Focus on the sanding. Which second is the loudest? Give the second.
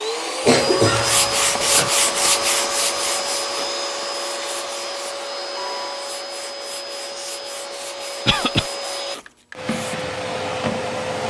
2 s.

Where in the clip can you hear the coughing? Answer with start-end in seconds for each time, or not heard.
0.5-1.9, 8.2-8.7.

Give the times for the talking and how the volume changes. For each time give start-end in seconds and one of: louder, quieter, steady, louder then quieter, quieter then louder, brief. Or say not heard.
not heard.